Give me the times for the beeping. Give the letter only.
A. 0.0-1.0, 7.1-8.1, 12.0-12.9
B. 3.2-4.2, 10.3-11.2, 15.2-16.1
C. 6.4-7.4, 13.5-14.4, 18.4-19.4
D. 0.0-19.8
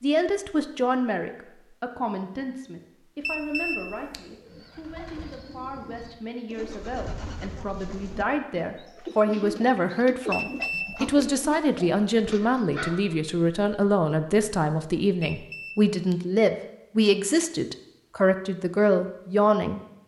B.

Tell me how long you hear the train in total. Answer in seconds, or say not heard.
not heard.